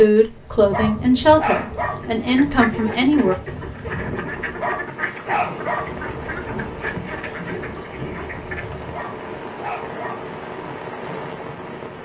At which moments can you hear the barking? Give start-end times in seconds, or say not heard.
0.7-2.0, 4.5-6.0, 8.9-10.2.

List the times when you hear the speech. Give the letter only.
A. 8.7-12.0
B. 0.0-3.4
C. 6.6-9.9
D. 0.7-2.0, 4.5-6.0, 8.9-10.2
B.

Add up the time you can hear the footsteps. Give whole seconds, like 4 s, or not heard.
not heard.